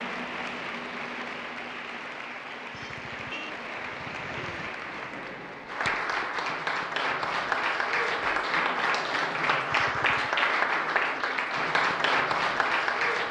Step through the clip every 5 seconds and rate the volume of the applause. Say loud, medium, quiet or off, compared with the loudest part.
medium, loud, loud.